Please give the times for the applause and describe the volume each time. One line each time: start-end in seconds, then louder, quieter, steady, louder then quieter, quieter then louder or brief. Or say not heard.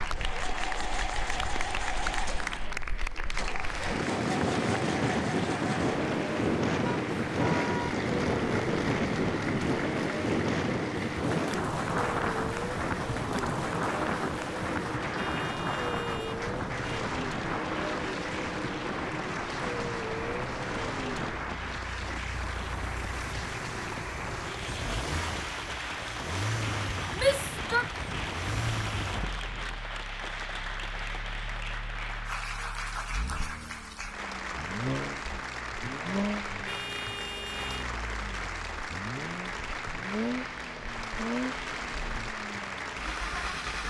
0.0-43.8 steady.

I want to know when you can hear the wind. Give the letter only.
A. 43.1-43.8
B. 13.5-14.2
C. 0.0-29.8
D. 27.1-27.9
C.